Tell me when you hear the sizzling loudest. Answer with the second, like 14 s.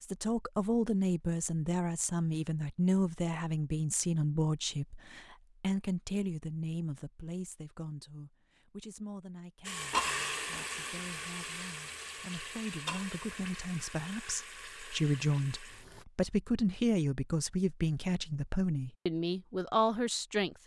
10 s.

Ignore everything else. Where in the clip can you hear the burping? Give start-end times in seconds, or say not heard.
not heard.